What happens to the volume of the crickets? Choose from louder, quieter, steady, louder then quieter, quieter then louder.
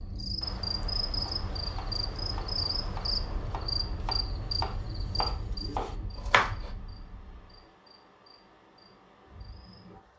quieter.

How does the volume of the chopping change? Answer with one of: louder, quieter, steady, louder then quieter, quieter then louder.
louder.